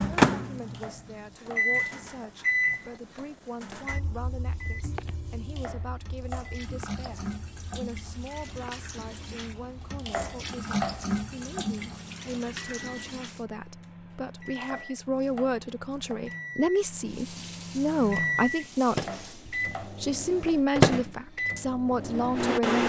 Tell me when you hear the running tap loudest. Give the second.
11 s.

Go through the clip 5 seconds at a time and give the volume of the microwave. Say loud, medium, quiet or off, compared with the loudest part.
loud, quiet, quiet, medium, loud.